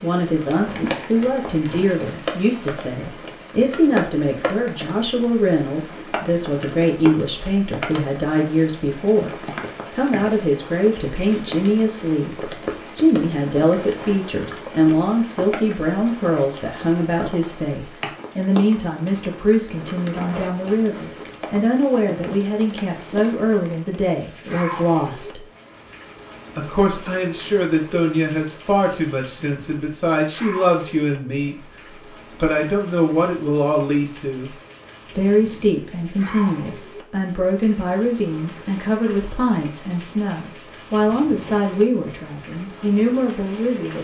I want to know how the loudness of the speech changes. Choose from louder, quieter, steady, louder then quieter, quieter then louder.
steady.